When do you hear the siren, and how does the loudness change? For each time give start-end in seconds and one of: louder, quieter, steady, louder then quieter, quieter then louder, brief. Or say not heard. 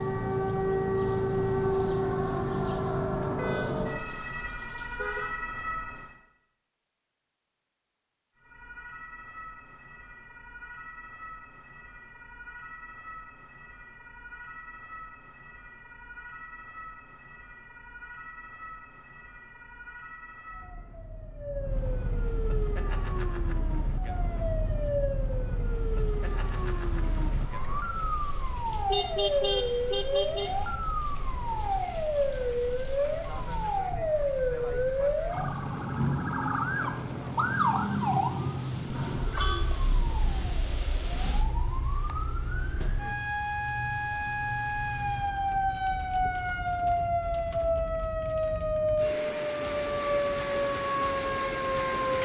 0.0-6.2 quieter
8.3-52.2 louder.